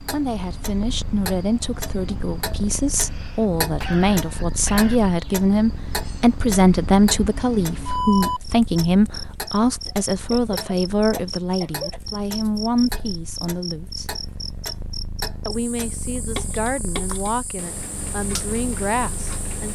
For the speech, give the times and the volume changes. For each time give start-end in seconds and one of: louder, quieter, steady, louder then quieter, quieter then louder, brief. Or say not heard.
0.1-14.2 louder then quieter
15.4-19.6 louder.